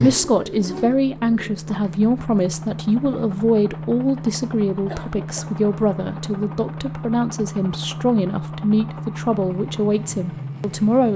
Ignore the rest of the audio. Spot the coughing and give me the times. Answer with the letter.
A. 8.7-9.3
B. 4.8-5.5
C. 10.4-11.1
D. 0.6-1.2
B.